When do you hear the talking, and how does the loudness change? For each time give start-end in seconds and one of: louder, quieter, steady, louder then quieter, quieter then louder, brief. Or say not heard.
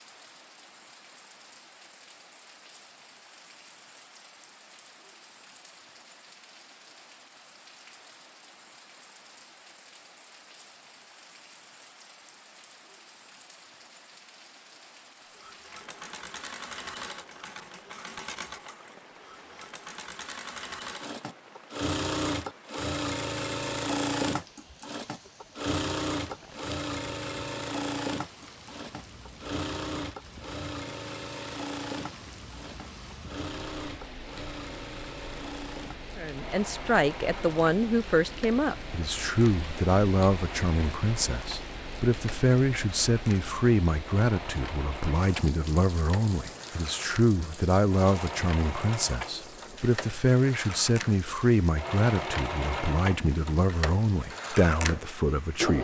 36.1-55.7 steady.